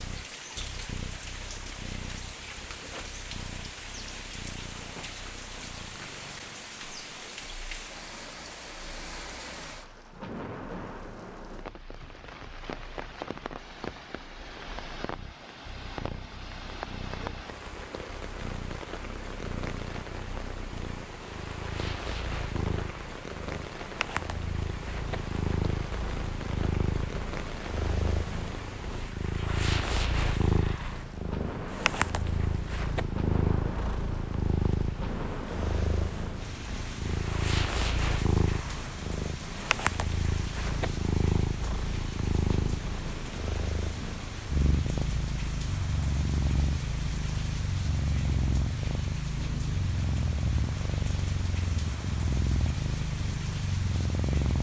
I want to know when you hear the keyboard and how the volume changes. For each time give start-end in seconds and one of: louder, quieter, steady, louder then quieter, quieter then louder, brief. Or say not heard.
not heard.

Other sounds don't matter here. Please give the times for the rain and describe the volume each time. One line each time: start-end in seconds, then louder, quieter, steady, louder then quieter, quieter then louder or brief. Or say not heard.
0.0-54.5 steady.